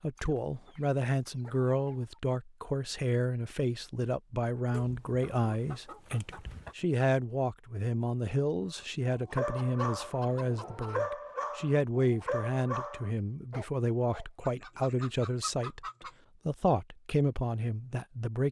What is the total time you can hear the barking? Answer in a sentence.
The barking can be heard for 5 seconds in total.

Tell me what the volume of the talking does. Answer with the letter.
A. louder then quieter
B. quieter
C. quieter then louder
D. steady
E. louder
D.